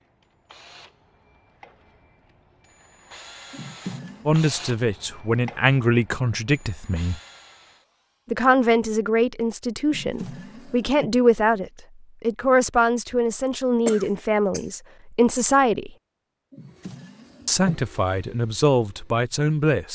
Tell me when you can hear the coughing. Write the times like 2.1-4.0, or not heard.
13.4-14.7.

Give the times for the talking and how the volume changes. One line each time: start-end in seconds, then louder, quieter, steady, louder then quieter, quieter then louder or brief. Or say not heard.
4.2-7.2 brief
8.3-15.9 steady
17.4-19.9 brief.